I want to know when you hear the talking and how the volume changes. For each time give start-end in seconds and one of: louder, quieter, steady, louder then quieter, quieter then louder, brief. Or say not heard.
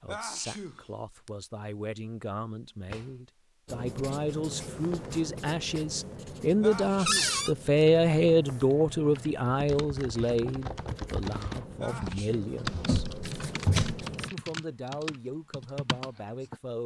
0.0-13.1 louder then quieter
14.3-16.8 brief.